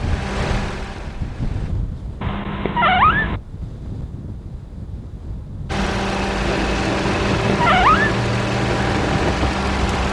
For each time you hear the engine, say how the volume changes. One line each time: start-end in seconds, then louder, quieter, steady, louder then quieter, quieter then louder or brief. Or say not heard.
0.0-1.7 brief
5.7-10.0 steady.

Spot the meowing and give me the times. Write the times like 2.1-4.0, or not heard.
2.2-3.4, 7.1-8.2.